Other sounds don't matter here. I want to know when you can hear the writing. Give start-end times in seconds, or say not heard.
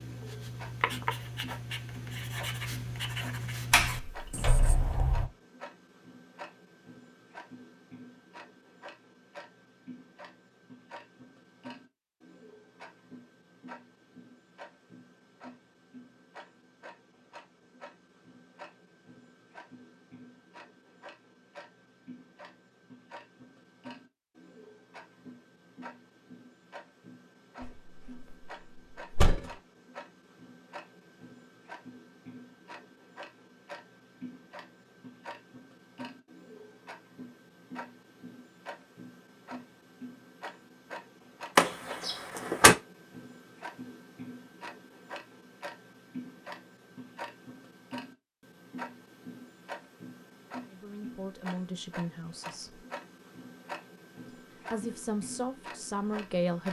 0.0-5.0.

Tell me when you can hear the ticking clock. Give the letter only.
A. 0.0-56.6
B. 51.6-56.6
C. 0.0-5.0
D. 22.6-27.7
A.